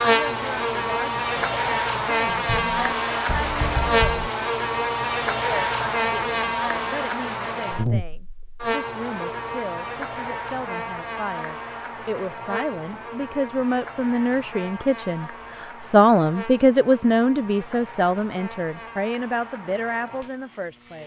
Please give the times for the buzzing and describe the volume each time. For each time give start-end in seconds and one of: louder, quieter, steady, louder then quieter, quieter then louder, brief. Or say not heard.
0.0-21.0 quieter.